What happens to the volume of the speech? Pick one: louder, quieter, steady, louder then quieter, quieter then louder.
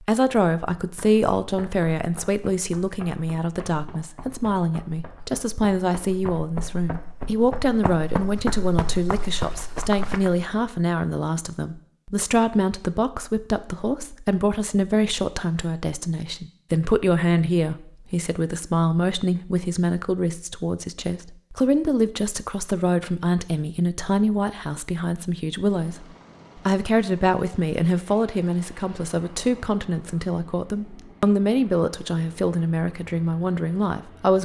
steady.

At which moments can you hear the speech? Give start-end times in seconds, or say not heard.
0.0-34.4.